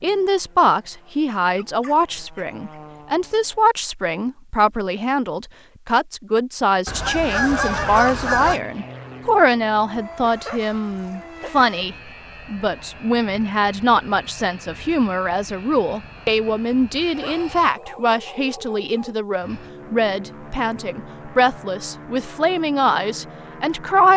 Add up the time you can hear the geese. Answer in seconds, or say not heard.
2 s.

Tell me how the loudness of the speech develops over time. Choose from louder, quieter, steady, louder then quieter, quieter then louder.
steady.